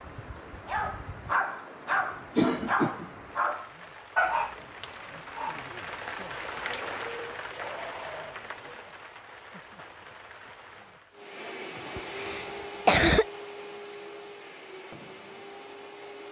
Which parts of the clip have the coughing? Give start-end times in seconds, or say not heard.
2.4-3.1, 11.9-13.2.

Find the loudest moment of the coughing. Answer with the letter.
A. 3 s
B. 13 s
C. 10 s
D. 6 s
B.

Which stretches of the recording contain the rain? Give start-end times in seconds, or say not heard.
0.0-11.3.